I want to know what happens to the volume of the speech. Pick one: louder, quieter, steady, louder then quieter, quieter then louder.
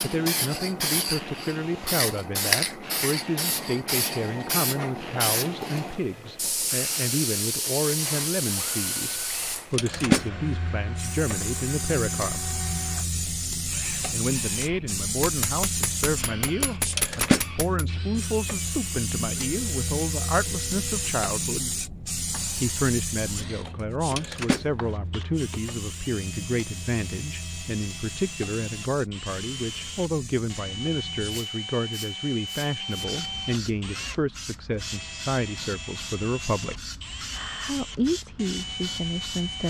steady.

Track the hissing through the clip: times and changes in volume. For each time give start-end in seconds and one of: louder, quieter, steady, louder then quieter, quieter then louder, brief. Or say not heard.
0.0-39.6 quieter.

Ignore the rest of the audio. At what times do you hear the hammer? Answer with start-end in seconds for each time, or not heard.
15.1-17.9, 24.1-25.6.